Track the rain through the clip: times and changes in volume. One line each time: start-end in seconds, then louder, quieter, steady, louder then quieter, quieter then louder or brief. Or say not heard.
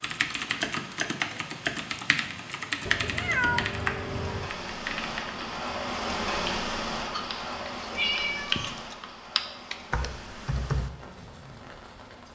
0.1-12.3 louder then quieter.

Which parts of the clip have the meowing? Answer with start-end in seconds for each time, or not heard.
2.9-4.5, 7.1-8.8.